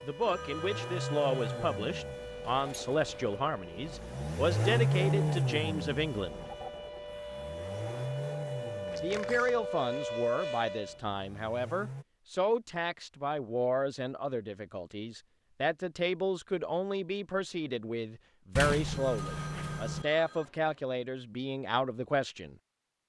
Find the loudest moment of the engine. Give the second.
5 s.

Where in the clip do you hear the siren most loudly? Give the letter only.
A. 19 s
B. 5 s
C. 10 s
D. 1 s
C.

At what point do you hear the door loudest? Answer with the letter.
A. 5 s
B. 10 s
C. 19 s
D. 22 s
C.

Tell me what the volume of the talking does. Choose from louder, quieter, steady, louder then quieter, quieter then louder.
steady.